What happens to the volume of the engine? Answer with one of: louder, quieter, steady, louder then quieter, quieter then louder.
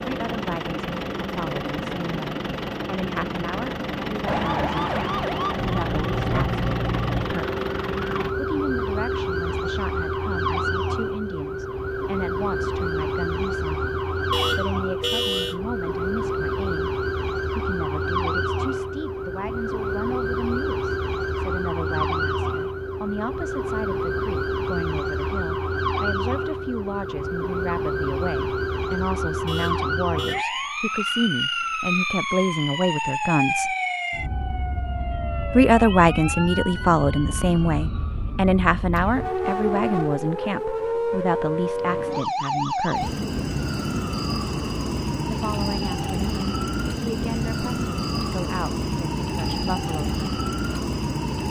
steady.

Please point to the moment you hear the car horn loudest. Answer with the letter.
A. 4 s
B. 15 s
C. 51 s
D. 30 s
B.